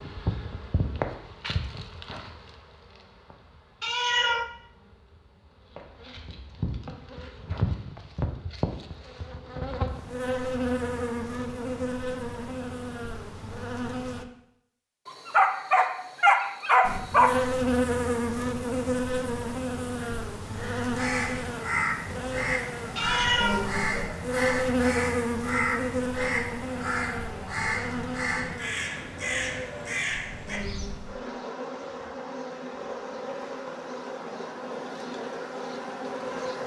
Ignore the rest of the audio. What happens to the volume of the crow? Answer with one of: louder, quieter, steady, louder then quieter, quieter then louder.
steady.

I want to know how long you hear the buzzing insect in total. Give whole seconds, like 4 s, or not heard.
34 s.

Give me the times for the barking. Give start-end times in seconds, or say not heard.
15.1-17.4.